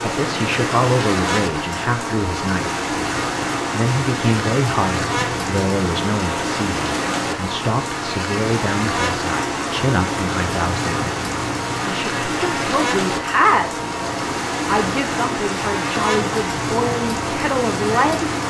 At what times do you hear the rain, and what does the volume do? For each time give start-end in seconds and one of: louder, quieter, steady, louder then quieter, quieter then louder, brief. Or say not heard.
0.0-18.4 steady.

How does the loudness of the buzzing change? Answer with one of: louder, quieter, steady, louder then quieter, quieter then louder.
steady.